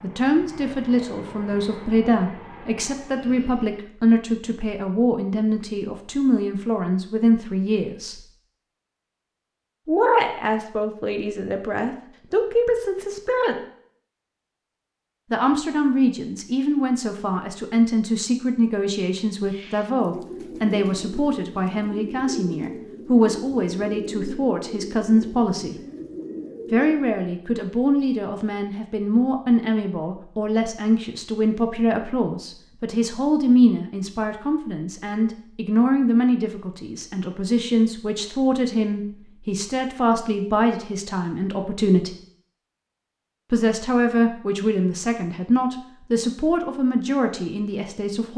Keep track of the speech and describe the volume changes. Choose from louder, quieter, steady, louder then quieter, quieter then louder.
steady.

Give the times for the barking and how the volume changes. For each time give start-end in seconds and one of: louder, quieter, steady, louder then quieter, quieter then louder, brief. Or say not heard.
not heard.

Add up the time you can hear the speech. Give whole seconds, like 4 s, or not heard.
43 s.